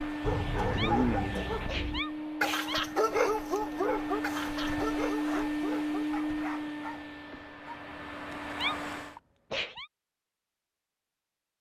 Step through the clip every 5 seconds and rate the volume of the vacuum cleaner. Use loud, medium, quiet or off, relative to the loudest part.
loud, loud, off.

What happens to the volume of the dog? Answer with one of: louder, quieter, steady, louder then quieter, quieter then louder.
quieter.